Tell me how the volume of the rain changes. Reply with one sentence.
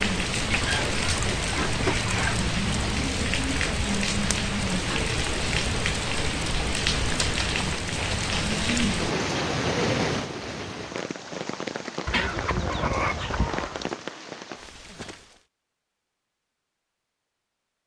The loudness of the rain goes down.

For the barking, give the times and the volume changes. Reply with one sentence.
The barking can't be heard in this clip.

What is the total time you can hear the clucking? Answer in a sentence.
The clucking can be heard for 4 seconds in total.